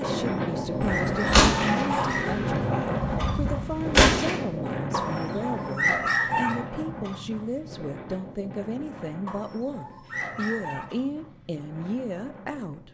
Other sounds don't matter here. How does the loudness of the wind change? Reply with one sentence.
The volume of the wind goes down.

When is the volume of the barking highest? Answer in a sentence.
The loudest moment of the barking is at 6 seconds.